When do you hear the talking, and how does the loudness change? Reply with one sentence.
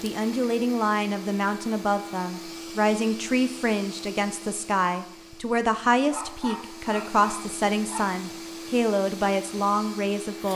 You can hear the talking from 0.0 to 10.5 s, at a steady volume.